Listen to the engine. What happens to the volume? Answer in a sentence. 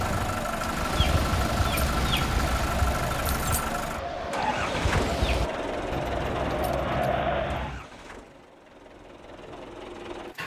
The volume of the engine goes down.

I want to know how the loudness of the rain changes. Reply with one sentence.
The volume of the rain goes down, then up.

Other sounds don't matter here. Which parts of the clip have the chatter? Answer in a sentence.
You can hear the chatter from 0.0 to 7.8 s.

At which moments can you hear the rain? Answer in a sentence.
You can hear the rain from 0.0 to 5.5 s.